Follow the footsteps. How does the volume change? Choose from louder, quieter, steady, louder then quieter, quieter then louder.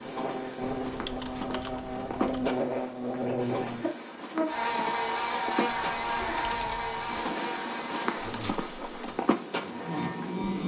louder.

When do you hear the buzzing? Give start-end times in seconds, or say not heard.
0.0-10.6.